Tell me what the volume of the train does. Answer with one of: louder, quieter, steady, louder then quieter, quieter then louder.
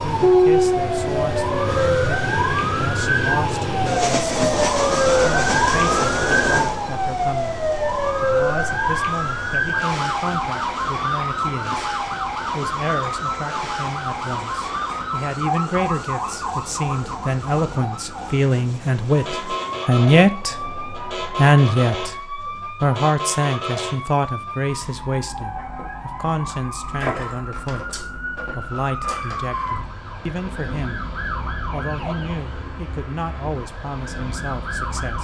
quieter.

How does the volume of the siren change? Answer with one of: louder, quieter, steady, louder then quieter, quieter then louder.
quieter.